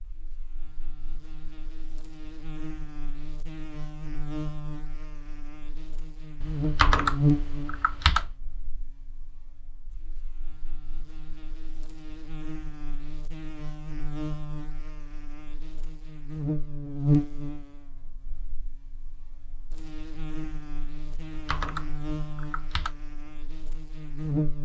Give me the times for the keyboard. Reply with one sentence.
The keyboard can be heard from 6.4 to 8.3 s and from 21.1 to 22.9 s.